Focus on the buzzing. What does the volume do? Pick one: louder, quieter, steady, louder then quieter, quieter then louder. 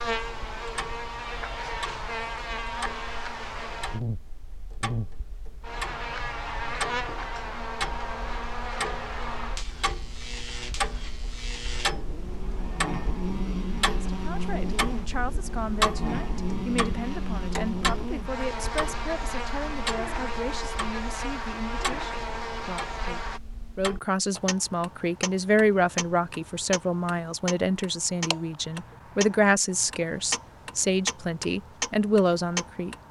steady.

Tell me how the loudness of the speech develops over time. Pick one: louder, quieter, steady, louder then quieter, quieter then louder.
louder.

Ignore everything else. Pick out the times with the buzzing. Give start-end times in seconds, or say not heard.
0.0-23.4.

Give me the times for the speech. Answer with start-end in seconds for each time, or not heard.
13.9-33.0.